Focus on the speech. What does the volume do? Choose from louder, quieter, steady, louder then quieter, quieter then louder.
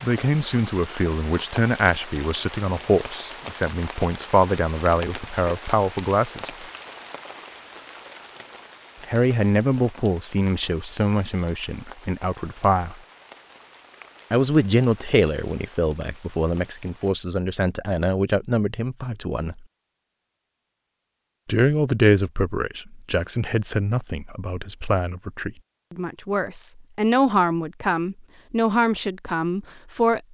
steady.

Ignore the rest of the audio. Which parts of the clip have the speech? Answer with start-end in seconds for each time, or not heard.
0.0-6.7, 9.1-12.9, 14.3-19.6, 21.4-30.2.